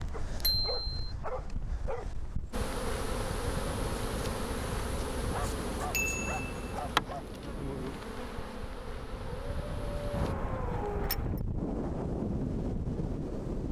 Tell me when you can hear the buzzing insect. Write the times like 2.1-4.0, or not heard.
2.5-10.3.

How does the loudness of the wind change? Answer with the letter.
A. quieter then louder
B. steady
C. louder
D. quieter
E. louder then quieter
C.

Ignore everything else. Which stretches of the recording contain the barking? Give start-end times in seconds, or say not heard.
0.1-2.1, 5.3-7.2, 9.2-11.2.